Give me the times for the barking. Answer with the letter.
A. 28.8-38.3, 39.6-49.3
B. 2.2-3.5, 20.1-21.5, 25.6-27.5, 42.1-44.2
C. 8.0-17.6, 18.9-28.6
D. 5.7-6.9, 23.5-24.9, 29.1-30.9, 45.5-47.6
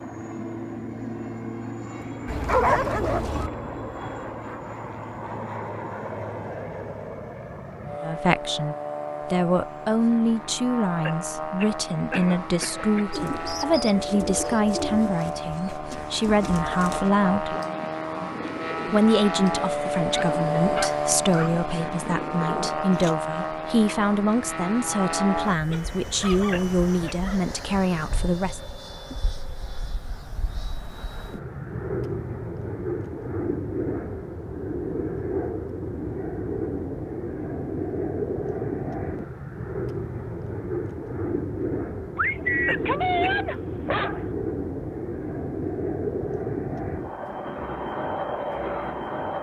B.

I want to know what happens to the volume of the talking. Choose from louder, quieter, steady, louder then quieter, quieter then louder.
steady.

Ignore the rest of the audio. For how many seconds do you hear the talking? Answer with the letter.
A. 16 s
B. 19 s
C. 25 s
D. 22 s
B.